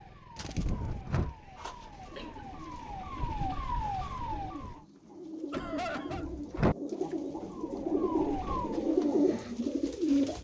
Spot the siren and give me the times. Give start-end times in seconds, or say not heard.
0.0-4.8, 7.3-9.1.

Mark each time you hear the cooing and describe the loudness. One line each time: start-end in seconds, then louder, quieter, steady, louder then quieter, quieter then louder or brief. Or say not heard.
0.3-10.3 louder.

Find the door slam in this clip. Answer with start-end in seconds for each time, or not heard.
0.6-1.4, 5.5-6.8.